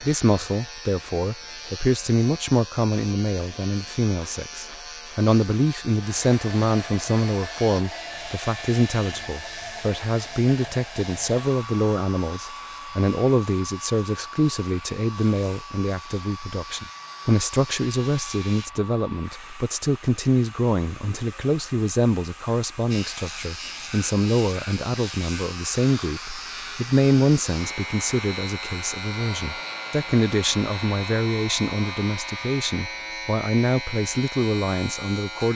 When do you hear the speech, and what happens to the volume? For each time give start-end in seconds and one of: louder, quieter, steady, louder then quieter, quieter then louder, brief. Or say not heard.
0.0-35.5 steady.